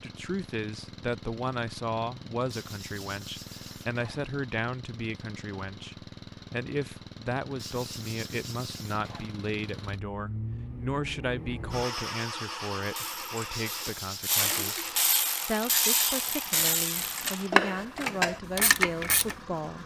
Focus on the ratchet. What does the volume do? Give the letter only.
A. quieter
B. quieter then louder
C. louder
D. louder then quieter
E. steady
C.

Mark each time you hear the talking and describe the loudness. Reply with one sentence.
You can hear the talking from 0.0 to 19.8 s, at a steady volume.